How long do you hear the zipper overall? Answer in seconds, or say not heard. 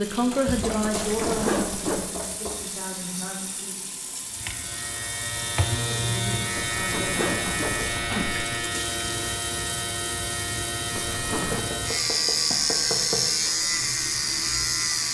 4 s.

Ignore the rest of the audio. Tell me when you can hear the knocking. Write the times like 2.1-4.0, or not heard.
0.5-2.6, 7.5-8.1, 11.5-13.2.